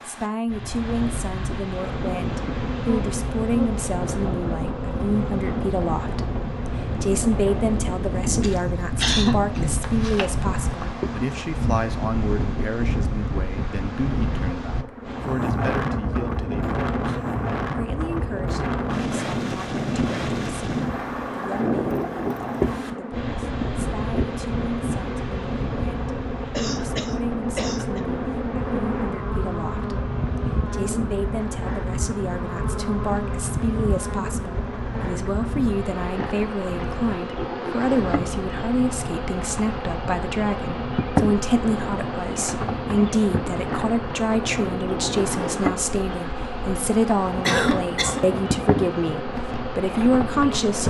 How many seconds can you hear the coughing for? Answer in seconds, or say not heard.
4 s.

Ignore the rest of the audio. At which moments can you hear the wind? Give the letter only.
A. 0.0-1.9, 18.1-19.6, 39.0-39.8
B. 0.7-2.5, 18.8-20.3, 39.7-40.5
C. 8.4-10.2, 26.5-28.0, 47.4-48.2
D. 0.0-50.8
D.